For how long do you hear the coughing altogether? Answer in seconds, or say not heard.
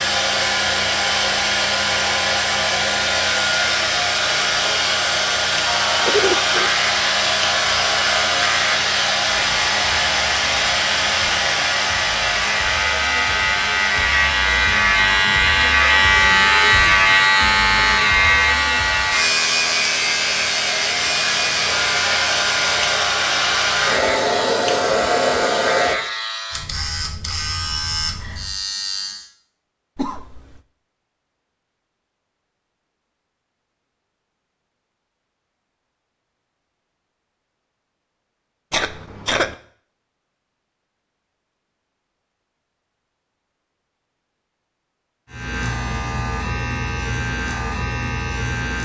2 s.